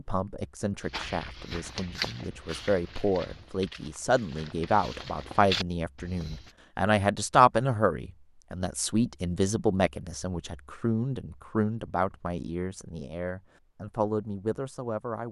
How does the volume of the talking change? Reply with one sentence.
The volume of the talking goes up, then down.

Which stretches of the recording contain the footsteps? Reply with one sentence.
You can hear the footsteps from 0.8 to 6.5 s.